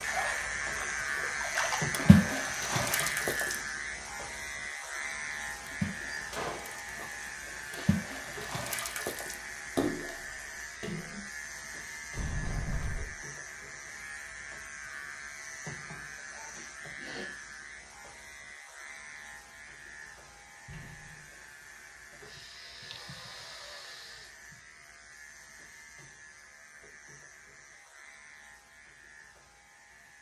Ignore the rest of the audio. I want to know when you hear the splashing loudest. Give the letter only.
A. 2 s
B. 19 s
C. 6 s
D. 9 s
A.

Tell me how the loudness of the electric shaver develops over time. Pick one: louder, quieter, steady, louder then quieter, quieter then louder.
quieter.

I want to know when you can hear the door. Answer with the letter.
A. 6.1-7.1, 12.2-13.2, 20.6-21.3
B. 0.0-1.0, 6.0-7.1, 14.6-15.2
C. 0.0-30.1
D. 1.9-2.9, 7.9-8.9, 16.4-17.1
A.